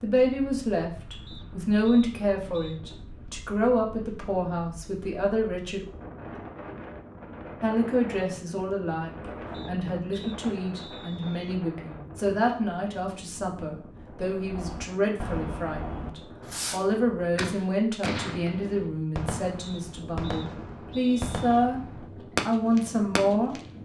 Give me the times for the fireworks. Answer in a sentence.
You can hear the fireworks from 14.4 to 23.6 s.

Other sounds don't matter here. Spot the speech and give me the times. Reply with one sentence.
You can hear the speech from 0.0 to 5.8 s, from 7.6 to 21.8 s and from 22.4 to 23.6 s.